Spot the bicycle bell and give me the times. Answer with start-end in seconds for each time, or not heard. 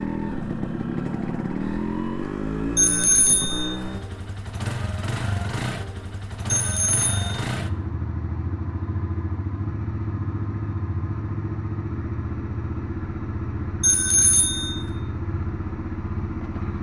2.8-3.8, 6.5-7.5, 13.8-14.8.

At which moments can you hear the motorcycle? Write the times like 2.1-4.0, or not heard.
0.0-16.7.